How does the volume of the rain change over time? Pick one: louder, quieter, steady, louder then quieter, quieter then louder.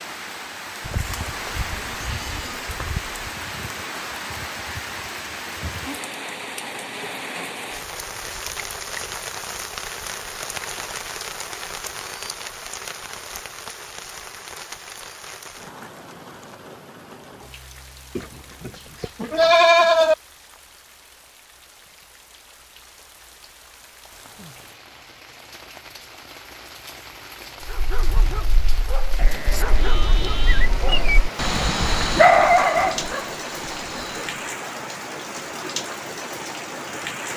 quieter then louder.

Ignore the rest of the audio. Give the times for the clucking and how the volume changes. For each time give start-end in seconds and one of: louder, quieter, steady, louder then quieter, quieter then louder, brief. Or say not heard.
not heard.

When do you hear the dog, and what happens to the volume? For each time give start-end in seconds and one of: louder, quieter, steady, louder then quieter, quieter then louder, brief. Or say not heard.
27.6-34.4 louder then quieter.